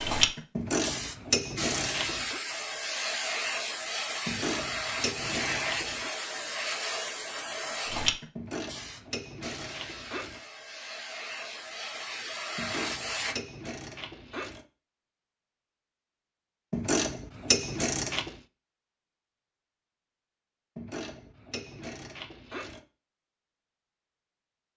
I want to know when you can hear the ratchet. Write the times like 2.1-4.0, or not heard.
0.6-2.4, 4.2-6.1, 8.3-10.4, 12.6-14.7, 16.7-18.3, 20.8-22.8.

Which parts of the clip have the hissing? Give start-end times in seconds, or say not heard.
0.0-13.3.